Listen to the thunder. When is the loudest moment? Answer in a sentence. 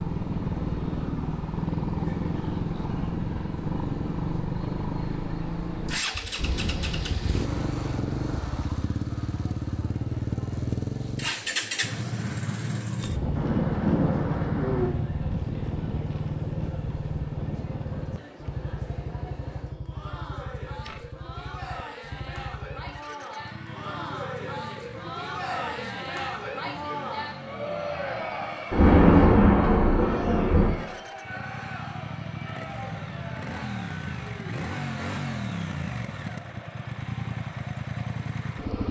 The loudest moment of the thunder is at 29 seconds.